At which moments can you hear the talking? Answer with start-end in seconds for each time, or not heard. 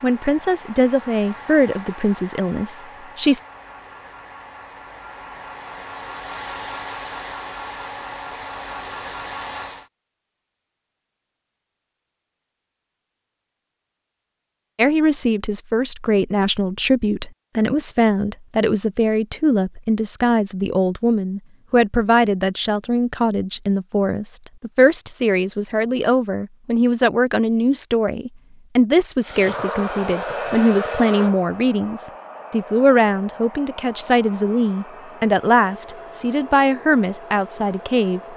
0.0-3.4, 14.8-38.2.